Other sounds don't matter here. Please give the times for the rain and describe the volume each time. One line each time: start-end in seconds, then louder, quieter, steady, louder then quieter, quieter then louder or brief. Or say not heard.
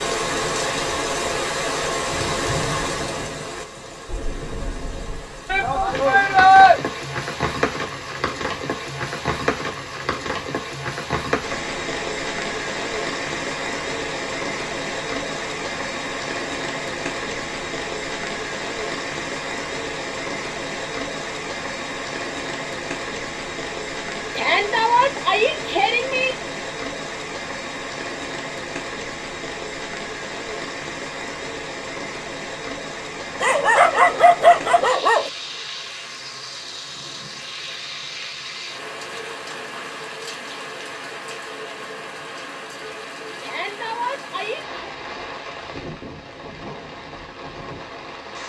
0.0-48.4 quieter.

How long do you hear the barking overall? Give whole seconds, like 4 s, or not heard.
2 s.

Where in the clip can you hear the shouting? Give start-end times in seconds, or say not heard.
5.5-6.8, 24.4-26.4, 43.4-44.8.